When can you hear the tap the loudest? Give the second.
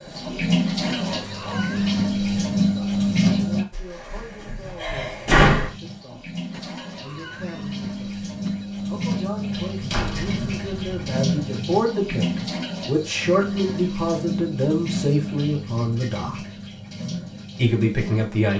3 s.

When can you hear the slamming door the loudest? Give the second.
5 s.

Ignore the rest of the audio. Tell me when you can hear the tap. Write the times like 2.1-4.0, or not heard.
0.0-3.6, 5.5-18.5.